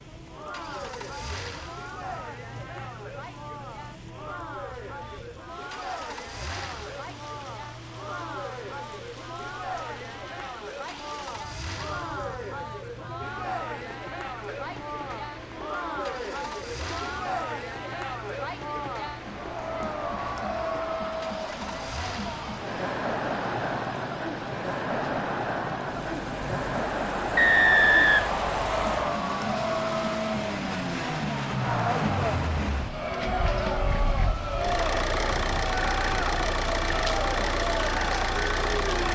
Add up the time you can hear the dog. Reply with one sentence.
You can't hear the dog here.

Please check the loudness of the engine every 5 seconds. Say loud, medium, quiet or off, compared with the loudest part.
quiet, quiet, quiet, quiet, quiet, medium, loud, loud.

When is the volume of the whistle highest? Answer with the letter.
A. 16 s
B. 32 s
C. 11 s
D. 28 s
D.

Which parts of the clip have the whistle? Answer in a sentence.
The whistle can be heard from 27.4 to 29.1 s.